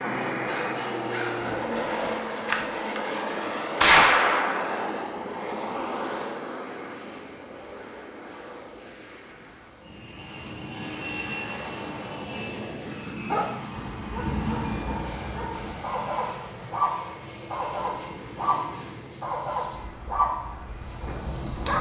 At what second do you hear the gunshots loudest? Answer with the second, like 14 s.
4 s.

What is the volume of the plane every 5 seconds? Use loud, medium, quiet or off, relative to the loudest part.
loud, medium, medium, medium, quiet.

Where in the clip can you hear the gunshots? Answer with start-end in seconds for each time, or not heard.
1.4-3.0, 3.8-5.0.